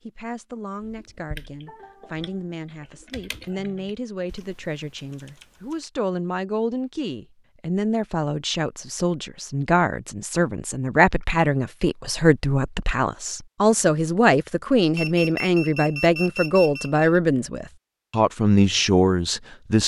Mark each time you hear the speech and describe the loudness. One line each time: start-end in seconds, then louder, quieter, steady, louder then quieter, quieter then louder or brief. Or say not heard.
0.0-19.8 louder.